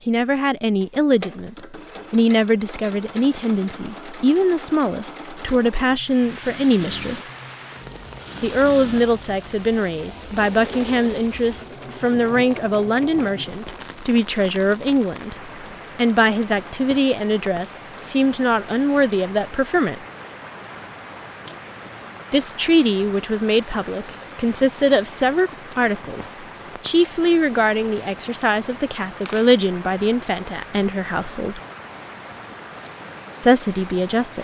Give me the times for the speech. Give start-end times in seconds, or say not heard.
0.1-7.2, 8.4-20.0, 22.3-31.6, 33.4-34.3.